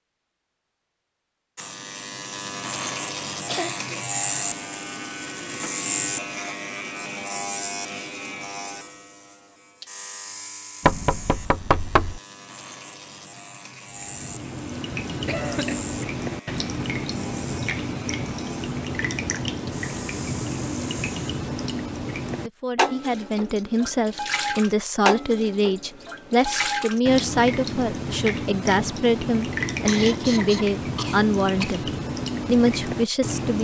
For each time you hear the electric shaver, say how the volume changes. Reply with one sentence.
You can hear the electric shaver from 1.6 to 21.4 s, getting quieter.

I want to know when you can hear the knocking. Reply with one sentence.
The knocking can be heard from 10.8 to 12.2 s.